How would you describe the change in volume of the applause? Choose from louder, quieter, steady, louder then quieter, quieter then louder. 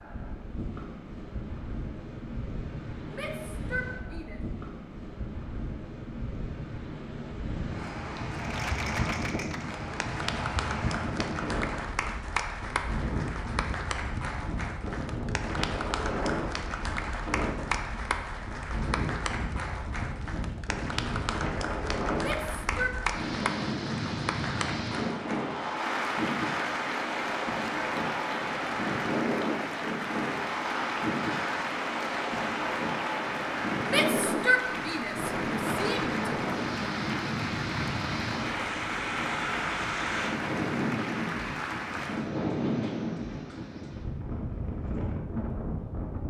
steady.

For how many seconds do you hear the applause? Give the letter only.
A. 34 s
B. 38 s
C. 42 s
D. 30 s
A.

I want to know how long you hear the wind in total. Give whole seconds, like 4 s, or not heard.
46 s.